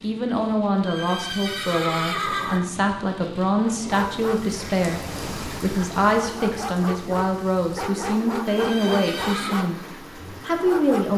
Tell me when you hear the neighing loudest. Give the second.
2 s.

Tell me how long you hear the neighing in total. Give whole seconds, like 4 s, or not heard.
3 s.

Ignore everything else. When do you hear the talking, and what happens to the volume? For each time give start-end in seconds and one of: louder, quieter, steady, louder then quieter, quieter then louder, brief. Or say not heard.
0.0-9.8 steady
10.4-11.1 brief.